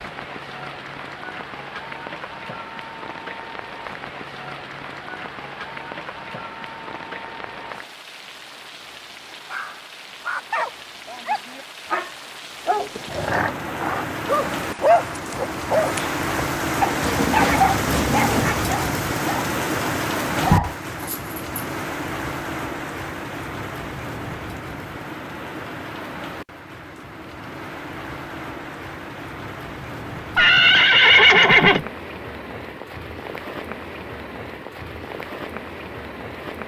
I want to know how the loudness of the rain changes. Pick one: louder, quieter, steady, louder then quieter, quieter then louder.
louder then quieter.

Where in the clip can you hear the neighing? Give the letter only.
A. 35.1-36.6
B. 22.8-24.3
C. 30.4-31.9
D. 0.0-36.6
C.